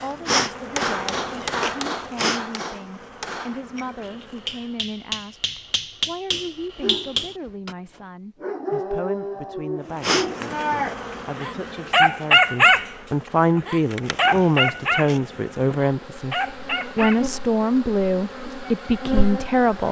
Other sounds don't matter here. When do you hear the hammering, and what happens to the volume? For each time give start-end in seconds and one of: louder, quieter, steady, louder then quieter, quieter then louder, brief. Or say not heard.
0.6-7.8 quieter then louder.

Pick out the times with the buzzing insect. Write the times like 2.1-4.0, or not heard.
0.0-4.7, 9.9-19.8.